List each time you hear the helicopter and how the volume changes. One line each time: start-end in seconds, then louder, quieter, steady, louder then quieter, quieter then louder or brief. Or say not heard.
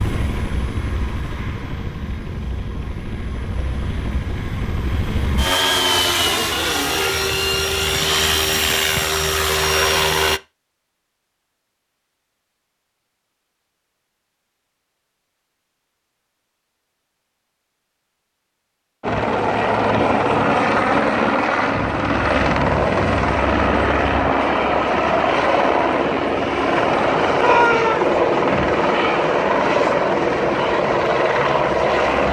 0.0-10.4 louder
19.0-32.2 steady.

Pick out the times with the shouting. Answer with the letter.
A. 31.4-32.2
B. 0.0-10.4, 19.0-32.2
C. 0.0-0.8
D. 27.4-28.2
D.